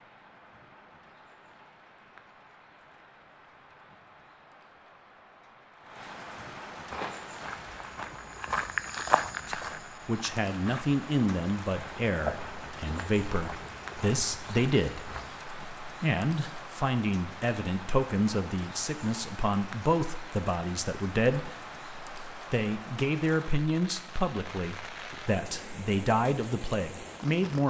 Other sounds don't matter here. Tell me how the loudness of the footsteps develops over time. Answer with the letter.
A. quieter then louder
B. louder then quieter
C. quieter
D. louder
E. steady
B.